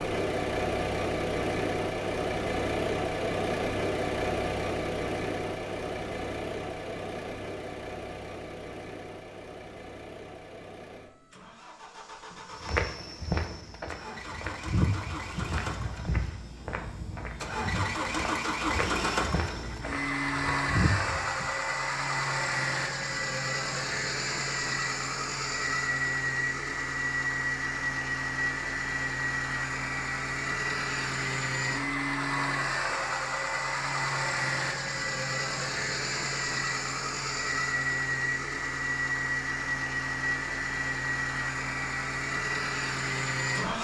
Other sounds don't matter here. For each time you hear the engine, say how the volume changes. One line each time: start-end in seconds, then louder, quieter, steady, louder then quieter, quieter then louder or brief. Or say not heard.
0.0-43.7 quieter then louder.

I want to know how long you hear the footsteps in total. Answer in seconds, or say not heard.
9 s.